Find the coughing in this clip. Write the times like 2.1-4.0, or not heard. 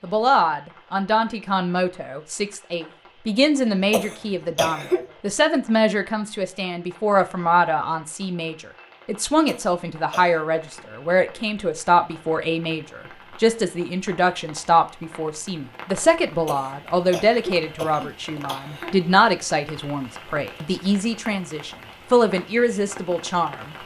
3.6-5.2, 9.4-10.5, 16.4-19.0.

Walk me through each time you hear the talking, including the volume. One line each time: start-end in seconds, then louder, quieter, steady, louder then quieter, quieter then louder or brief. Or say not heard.
0.0-23.8 steady.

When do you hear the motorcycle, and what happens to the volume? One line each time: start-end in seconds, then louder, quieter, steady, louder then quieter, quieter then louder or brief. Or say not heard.
not heard.